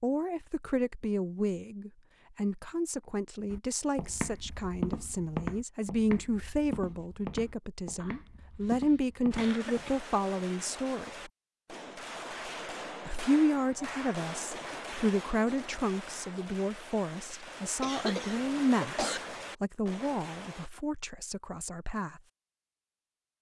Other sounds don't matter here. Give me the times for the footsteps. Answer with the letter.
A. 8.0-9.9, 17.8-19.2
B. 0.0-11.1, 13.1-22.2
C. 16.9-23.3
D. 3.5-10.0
D.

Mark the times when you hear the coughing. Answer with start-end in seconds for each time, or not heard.
8.0-9.9, 17.8-19.2.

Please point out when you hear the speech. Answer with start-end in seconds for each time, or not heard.
0.0-11.1, 13.1-22.2.